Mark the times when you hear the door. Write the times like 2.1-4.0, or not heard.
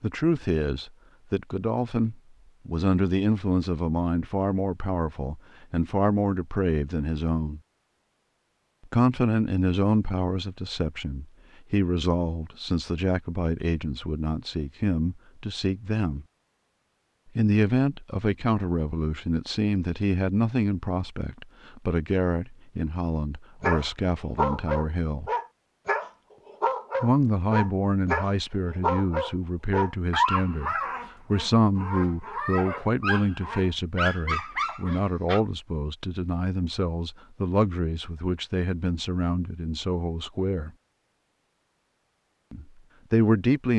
not heard.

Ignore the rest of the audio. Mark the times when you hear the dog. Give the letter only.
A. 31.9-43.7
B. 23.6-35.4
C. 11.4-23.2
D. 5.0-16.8
B.